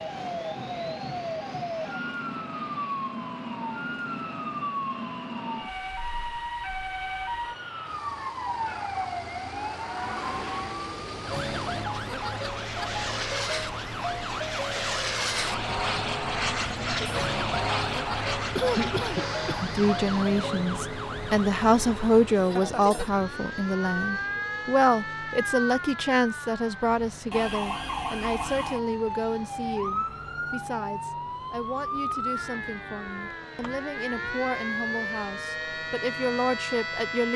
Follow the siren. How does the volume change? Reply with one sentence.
The volume of the siren stays about the same.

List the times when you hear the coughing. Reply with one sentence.
The coughing can be heard from 18.6 to 19.6 s.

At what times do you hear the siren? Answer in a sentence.
You can hear the siren from 0.0 to 37.3 s.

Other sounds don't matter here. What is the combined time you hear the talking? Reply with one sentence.
You can hear the talking for 18 seconds altogether.